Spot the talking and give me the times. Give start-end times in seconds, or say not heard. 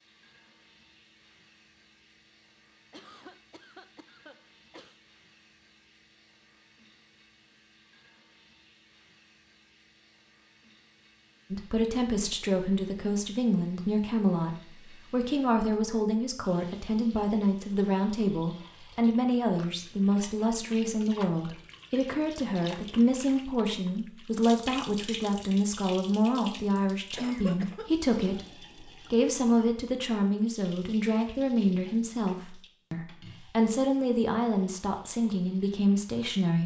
11.5-36.6.